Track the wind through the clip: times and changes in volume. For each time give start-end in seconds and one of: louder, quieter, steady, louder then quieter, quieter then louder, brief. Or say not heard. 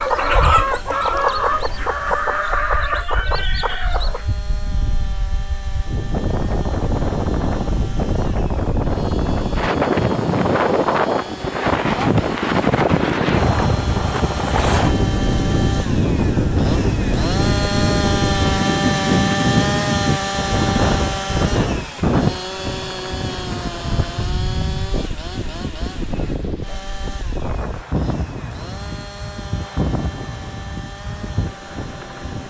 0.0-32.4 louder then quieter.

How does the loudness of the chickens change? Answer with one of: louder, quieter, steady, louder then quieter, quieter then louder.
quieter.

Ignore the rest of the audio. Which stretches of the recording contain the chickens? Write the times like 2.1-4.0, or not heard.
0.0-4.2.